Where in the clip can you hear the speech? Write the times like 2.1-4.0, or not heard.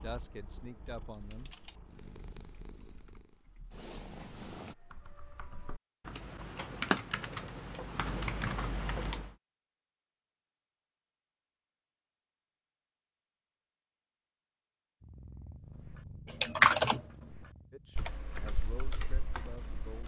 0.0-1.5, 17.7-20.0.